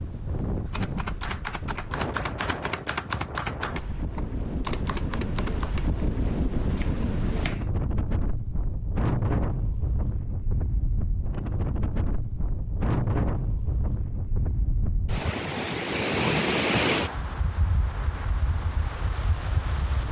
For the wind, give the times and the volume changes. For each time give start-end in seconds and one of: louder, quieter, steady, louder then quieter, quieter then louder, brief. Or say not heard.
0.0-20.0 louder.